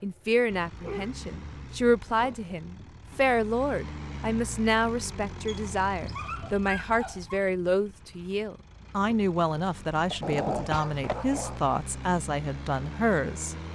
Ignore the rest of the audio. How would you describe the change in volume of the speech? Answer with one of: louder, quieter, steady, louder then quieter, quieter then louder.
steady.